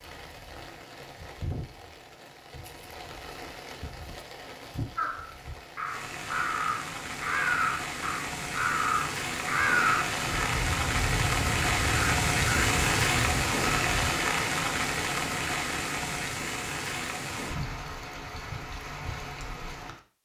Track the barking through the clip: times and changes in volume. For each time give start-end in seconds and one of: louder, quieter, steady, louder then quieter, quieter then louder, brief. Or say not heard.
not heard.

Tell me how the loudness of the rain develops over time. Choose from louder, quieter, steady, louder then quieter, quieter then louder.
louder then quieter.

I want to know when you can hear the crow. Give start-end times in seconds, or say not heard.
5.0-13.8.